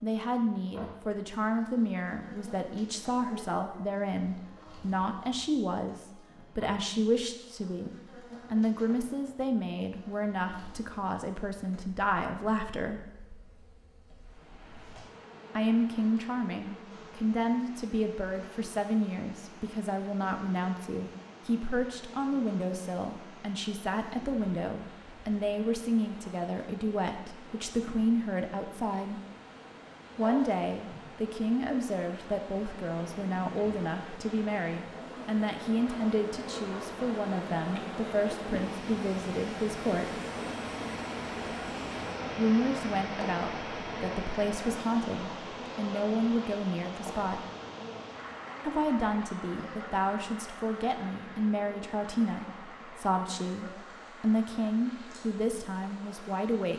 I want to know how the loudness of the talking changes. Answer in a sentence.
The loudness of the talking stays about the same.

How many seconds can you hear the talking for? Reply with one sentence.
The talking can be heard for 50 seconds in total.